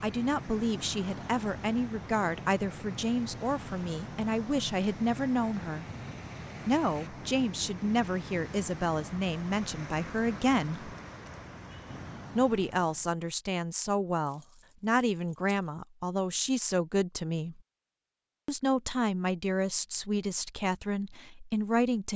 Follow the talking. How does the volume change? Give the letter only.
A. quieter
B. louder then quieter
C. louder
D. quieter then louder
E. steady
E.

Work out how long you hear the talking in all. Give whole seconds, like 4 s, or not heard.
19 s.